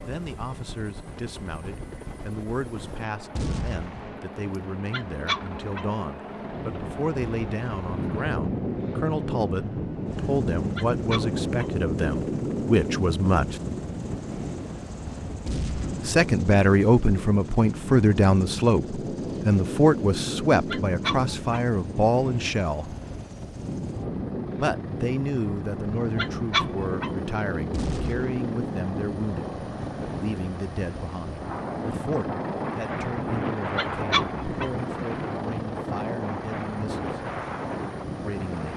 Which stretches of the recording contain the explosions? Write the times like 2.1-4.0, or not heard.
3.4-4.2, 15.4-16.1, 27.7-28.4.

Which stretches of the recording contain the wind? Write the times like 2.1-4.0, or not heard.
6.2-38.7.